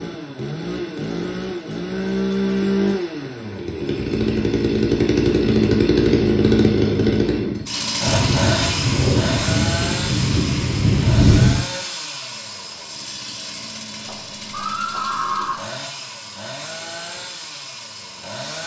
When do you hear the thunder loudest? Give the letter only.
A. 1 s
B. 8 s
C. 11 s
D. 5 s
C.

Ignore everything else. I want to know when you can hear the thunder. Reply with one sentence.
The thunder can be heard from 8.1 to 11.7 s.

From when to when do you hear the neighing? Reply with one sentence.
The neighing can be heard from 14.1 to 15.6 s.